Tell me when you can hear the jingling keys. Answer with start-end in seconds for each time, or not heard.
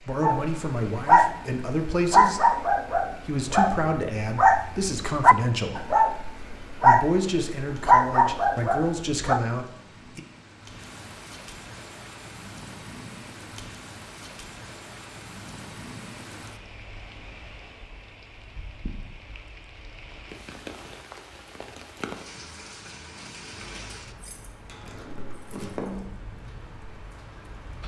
23.6-26.1.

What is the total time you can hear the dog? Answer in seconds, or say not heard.
9 s.